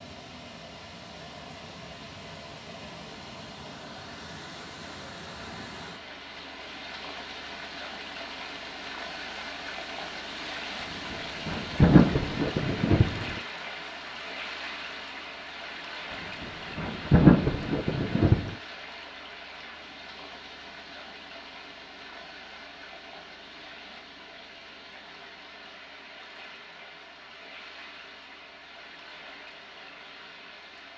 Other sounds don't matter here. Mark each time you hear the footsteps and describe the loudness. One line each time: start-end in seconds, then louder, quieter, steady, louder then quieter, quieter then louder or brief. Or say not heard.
not heard.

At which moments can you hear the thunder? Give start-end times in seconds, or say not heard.
11.1-13.4, 16.4-18.6.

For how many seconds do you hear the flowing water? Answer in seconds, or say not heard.
31 s.